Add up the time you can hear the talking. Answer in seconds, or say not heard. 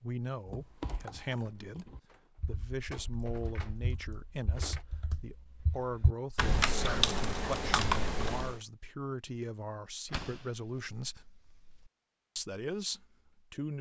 13 s.